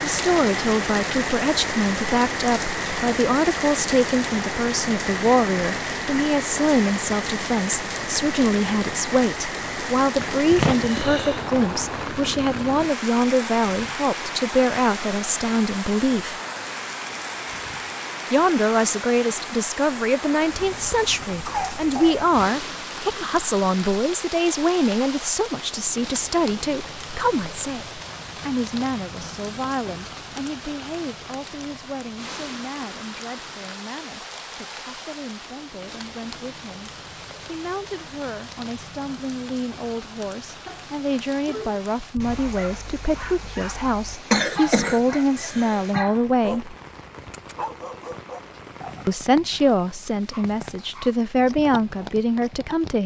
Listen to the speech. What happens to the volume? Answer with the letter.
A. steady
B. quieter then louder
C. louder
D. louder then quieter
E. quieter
B.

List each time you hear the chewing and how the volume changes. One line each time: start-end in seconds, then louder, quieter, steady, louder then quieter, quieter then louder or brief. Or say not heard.
not heard.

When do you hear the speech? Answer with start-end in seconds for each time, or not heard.
0.0-16.4, 18.3-46.8, 49.0-53.0.